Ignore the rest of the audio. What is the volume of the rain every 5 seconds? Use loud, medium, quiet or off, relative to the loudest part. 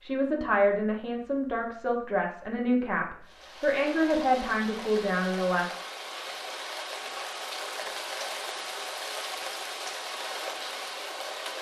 medium, loud, loud.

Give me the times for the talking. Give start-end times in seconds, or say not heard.
0.0-5.7.